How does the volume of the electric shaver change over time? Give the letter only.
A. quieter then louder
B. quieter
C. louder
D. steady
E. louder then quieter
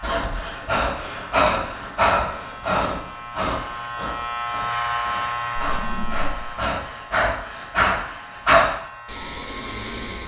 E.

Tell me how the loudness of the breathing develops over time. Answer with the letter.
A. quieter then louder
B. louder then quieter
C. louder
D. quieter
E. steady
A.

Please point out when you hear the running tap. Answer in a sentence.
The running tap can't be heard in this clip.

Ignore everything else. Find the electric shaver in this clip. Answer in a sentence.
The electric shaver can be heard from 0.0 to 10.2 s.